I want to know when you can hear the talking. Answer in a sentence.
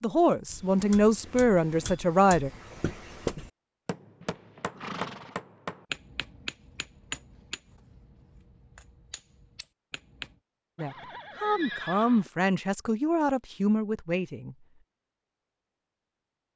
The talking can be heard from 0.0 to 2.5 s and from 10.8 to 14.7 s.